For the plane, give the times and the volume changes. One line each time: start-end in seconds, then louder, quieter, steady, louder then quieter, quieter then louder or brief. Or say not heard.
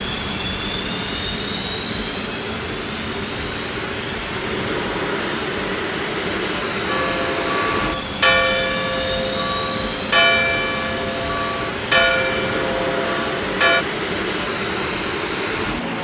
0.0-15.9 steady.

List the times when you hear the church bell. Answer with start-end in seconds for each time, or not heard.
6.8-13.8.